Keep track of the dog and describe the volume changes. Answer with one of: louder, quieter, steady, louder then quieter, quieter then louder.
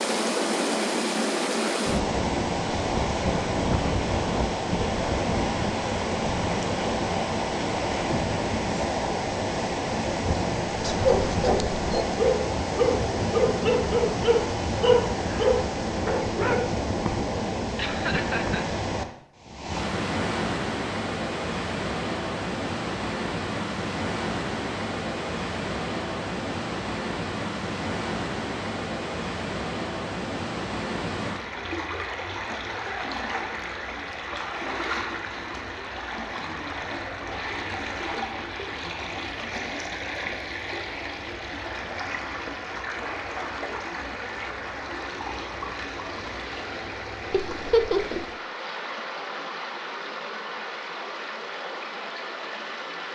steady.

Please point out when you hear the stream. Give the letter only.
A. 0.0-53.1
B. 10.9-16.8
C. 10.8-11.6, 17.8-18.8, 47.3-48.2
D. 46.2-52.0
A.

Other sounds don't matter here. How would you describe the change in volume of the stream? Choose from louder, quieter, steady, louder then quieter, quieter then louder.
quieter.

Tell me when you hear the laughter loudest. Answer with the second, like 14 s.
48 s.